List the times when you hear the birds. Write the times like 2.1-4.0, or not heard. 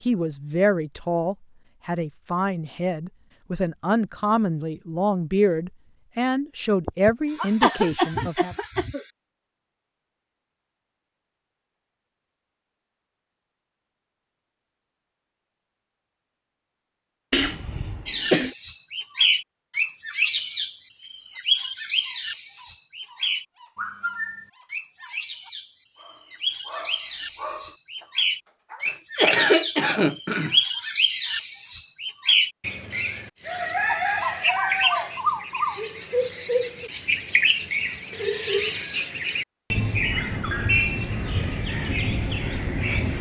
18.1-43.1.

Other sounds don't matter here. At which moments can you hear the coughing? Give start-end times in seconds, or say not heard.
6.8-9.1, 17.3-18.6, 28.9-30.6.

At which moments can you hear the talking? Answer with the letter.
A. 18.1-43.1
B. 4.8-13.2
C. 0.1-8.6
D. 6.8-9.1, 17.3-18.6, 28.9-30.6
C.